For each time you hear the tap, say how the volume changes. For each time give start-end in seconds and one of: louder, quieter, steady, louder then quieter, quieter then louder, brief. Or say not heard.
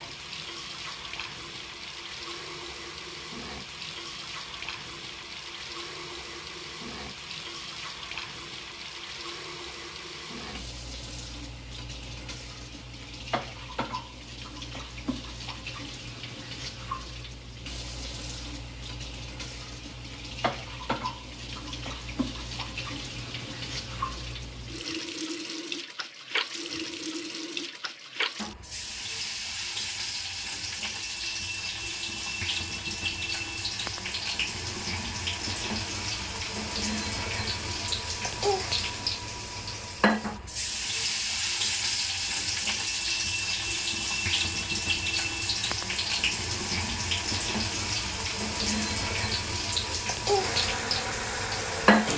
0.0-52.1 louder.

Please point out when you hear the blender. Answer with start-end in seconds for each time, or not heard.
49.8-52.1.